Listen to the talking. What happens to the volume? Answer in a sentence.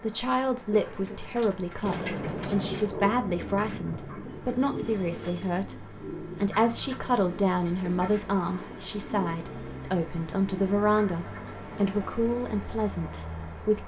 The loudness of the talking stays about the same.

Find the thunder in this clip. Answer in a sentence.
You can hear the thunder from 1.8 to 5.4 s.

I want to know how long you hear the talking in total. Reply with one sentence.
The talking can be heard for 14 seconds in total.